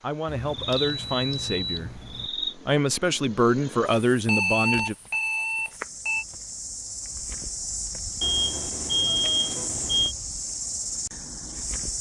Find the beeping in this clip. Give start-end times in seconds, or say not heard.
0.2-2.3, 4.2-6.2, 8.2-10.2.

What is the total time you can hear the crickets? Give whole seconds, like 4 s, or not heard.
12 s.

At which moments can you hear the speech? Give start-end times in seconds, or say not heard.
0.0-5.0.